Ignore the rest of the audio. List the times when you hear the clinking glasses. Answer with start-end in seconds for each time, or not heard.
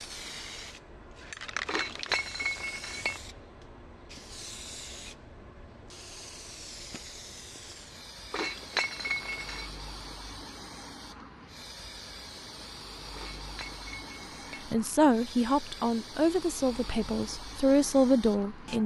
1.6-3.2, 8.3-9.7, 13.1-14.7.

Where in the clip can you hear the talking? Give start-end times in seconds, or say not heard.
14.7-18.8.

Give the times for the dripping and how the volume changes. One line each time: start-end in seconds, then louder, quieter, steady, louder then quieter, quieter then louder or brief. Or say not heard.
not heard.